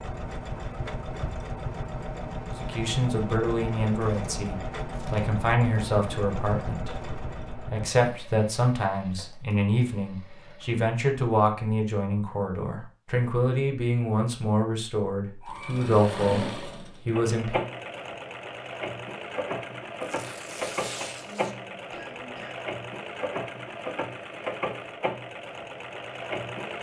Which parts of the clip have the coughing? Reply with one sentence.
You can hear the coughing from 21.2 to 22.6 s.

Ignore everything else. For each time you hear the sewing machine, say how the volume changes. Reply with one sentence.
You can hear the sewing machine from 0.0 to 10.8 s, getting quieter; and from 15.4 to 26.7 s, at a steady volume.